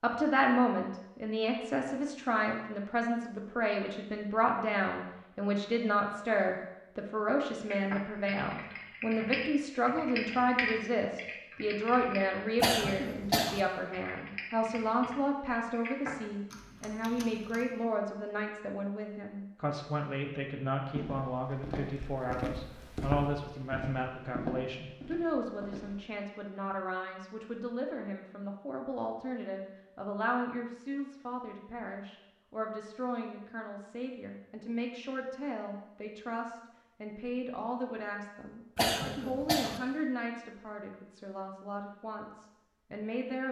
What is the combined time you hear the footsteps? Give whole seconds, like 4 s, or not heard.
5 s.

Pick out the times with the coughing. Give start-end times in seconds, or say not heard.
12.6-13.6, 38.8-39.8.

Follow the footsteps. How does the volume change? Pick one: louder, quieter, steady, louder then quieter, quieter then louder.
louder then quieter.